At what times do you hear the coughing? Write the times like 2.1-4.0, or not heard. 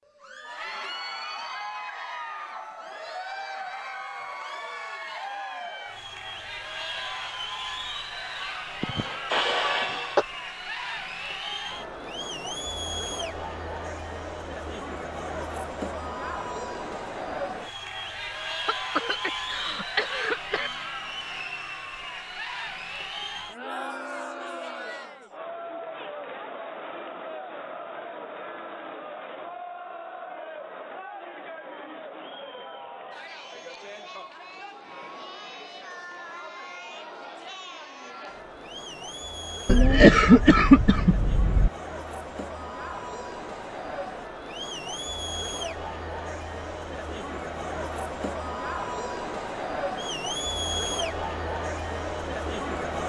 8.8-10.2, 18.6-20.7, 39.6-41.7.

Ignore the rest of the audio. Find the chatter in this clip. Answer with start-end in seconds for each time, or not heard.
0.1-53.0.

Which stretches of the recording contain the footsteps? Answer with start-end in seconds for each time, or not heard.
not heard.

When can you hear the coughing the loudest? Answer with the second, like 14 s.
40 s.